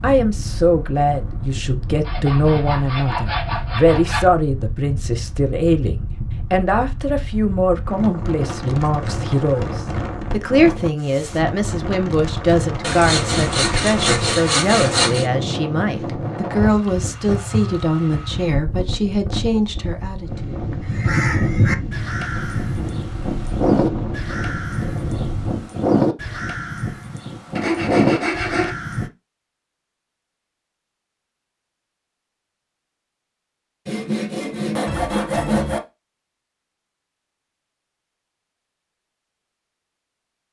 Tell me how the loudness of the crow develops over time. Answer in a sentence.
The volume of the crow goes down, then up.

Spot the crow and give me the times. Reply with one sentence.
You can hear the crow from 20.9 to 29.1 s.